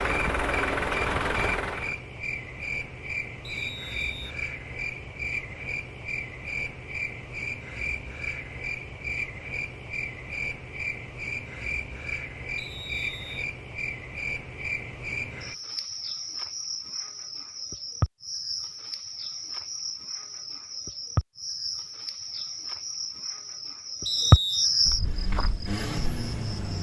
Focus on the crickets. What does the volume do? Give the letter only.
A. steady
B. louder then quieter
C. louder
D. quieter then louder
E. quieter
C.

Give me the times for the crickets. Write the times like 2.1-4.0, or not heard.
0.0-26.7.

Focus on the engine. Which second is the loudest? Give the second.
1 s.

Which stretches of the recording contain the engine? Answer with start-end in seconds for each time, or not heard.
0.0-2.0, 24.9-26.7.